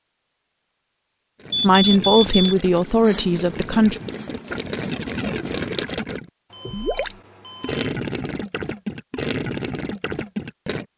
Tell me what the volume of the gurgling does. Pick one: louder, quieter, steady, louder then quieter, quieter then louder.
louder.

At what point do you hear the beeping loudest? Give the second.
2 s.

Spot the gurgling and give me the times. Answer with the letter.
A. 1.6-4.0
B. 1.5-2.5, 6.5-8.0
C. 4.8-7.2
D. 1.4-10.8
D.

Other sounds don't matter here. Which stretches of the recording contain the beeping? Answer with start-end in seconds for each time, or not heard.
1.5-2.5, 6.5-8.0.